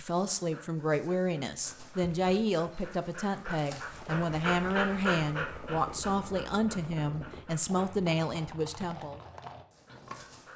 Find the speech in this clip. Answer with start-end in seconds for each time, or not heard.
0.0-9.2.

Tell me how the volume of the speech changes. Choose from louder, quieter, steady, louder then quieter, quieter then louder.
steady.